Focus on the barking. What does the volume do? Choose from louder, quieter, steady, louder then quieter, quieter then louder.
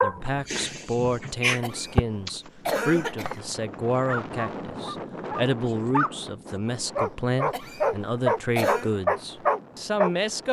quieter then louder.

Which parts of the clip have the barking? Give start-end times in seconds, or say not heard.
0.0-6.2, 7.0-10.2.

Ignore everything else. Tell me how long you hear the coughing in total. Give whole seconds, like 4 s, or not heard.
3 s.